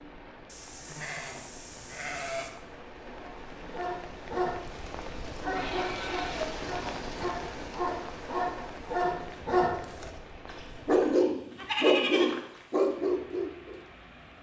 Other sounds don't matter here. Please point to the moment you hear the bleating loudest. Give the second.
12 s.